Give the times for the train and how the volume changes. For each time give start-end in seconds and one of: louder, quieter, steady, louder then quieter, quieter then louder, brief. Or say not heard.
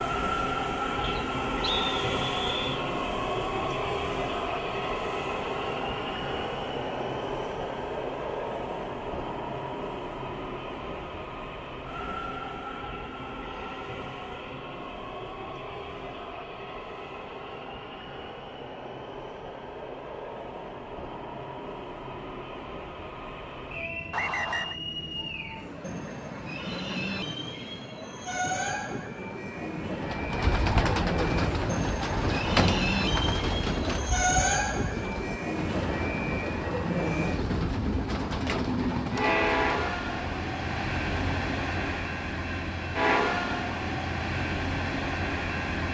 0.0-45.8 quieter then louder.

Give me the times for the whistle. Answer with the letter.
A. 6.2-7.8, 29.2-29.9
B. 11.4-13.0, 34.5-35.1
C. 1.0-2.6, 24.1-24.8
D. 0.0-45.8
C.